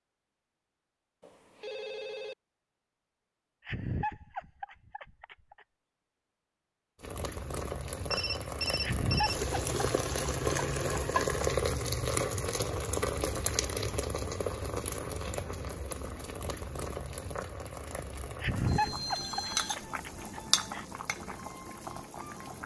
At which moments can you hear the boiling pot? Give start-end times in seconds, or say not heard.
7.0-22.6.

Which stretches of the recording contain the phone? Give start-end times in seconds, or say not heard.
1.2-2.4, 8.1-9.4, 18.6-19.8.